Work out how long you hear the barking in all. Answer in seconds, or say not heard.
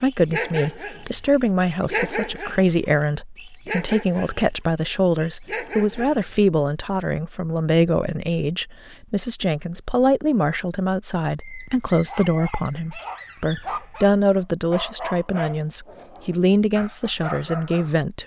13 s.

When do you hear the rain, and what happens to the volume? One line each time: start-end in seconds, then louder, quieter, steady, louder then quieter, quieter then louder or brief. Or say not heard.
not heard.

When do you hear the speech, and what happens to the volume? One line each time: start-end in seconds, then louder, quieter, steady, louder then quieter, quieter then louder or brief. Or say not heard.
0.0-18.2 steady.